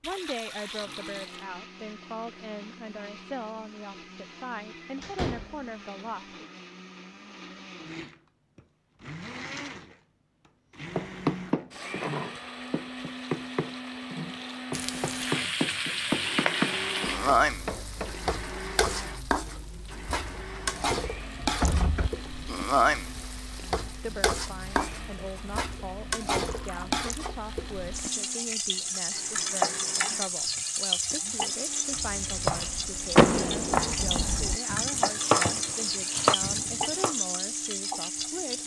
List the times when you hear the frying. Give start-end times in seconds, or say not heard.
14.7-38.6.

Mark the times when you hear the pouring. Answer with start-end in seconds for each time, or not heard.
0.0-1.4, 12.9-14.7, 26.4-26.9.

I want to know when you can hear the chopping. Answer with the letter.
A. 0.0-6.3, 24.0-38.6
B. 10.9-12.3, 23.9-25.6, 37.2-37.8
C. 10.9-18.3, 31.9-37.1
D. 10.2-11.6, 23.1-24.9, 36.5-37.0
C.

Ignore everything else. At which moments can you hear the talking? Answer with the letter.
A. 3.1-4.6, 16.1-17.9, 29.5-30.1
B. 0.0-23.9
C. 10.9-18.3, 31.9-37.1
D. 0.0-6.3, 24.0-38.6
D.